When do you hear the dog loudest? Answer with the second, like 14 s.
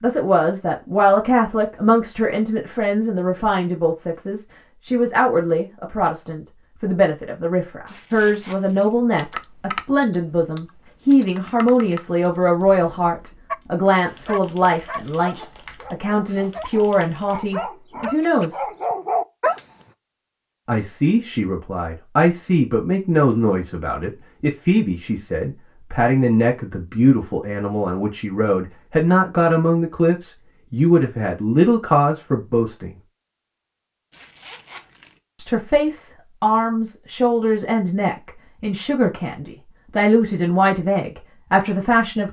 19 s.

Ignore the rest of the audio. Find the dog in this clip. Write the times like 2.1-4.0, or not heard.
13.5-19.6.